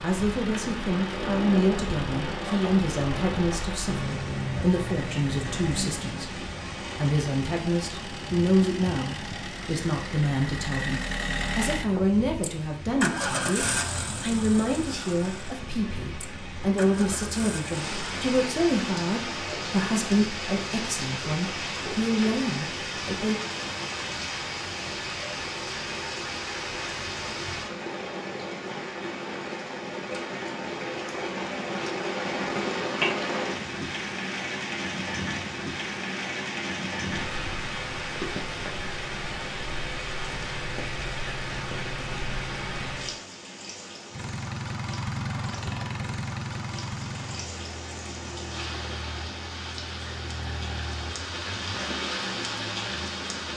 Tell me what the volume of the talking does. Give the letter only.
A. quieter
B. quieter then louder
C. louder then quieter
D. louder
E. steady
E.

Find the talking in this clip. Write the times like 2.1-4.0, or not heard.
0.0-23.4.